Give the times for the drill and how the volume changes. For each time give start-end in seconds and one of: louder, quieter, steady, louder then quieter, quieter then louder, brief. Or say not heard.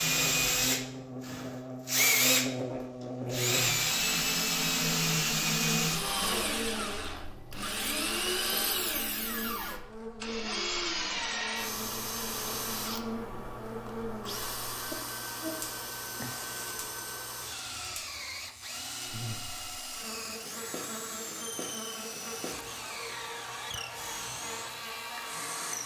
0.0-25.8 quieter.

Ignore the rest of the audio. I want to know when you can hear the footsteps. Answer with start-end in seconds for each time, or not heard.
not heard.